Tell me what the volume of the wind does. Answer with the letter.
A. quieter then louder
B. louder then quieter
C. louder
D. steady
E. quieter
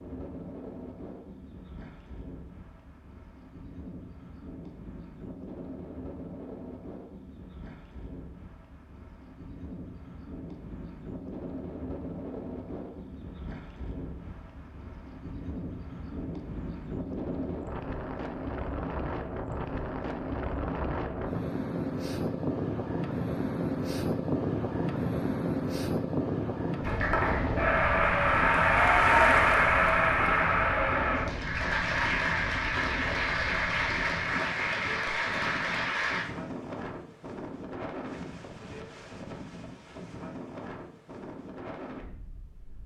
B.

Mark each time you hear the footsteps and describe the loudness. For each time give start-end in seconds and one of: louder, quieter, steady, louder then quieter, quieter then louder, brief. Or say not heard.
not heard.